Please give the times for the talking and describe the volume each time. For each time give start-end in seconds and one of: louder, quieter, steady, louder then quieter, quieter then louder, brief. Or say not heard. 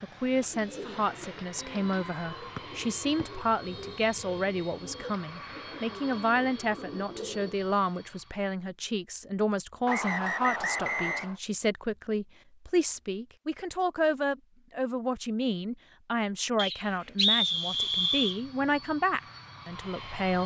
0.0-20.4 steady.